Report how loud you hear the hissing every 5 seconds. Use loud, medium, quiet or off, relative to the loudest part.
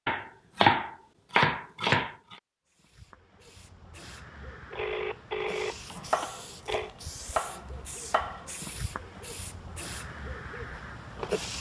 quiet, medium, loud.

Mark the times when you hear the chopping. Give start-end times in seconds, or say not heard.
0.1-2.1, 6.0-8.4.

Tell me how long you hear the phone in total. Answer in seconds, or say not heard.
2 s.